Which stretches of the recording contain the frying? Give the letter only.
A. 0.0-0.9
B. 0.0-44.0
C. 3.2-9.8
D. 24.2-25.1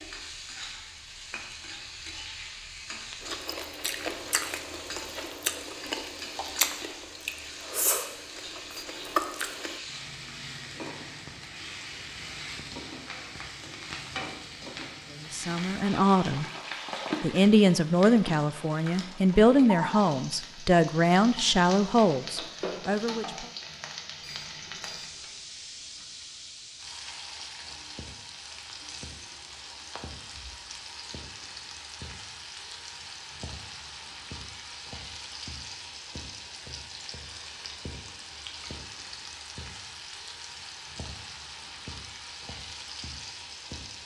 B.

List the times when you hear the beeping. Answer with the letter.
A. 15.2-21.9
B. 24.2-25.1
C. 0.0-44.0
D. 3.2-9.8
B.